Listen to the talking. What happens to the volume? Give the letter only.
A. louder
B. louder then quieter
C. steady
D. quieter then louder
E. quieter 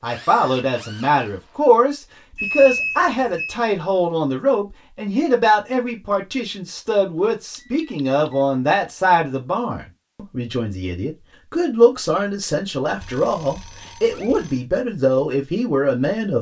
C.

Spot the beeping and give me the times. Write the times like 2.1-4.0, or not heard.
2.4-3.5, 7.5-8.4, 13.0-14.7.